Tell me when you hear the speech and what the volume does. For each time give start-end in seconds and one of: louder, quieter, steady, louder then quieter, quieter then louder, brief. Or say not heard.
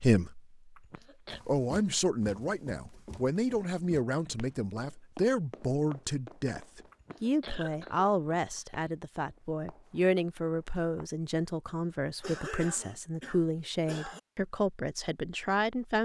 0.0-0.6 brief
1.4-16.0 steady.